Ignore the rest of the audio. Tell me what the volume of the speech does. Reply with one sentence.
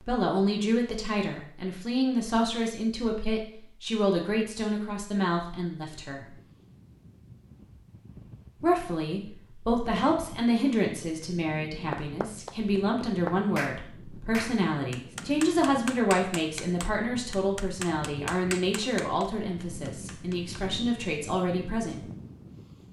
The loudness of the speech stays about the same.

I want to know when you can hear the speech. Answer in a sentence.
The speech can be heard from 0.0 to 6.3 s and from 8.6 to 22.1 s.